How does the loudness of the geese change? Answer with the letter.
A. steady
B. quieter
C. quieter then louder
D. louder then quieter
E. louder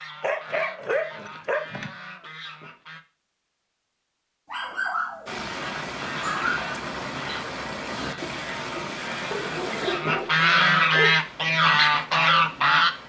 E.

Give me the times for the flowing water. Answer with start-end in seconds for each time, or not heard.
5.2-13.0.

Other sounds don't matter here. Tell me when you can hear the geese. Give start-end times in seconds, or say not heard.
0.0-3.0, 5.5-12.9.